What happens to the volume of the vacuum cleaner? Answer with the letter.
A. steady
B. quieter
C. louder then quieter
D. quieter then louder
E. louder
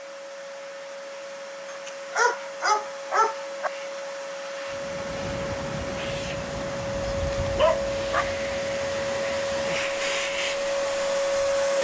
E.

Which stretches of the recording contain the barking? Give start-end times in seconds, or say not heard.
1.7-3.7, 7.0-8.3.